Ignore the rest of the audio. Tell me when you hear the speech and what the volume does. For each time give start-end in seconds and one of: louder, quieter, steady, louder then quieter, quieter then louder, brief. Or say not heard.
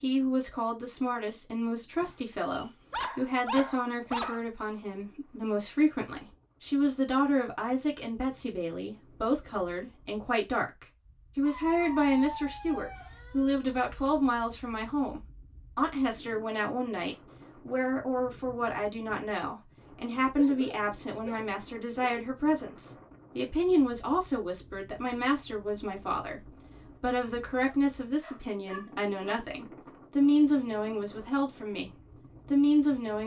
0.0-31.9 steady
32.5-33.2 brief.